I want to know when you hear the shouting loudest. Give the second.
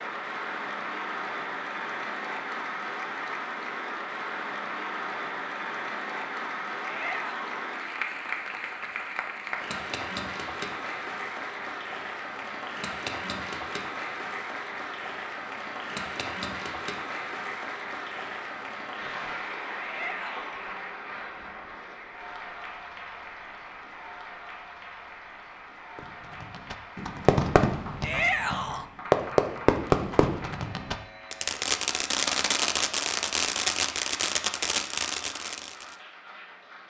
28 s.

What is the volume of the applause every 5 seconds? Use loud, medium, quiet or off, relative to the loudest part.
loud, loud, loud, loud, medium, medium, quiet, quiet.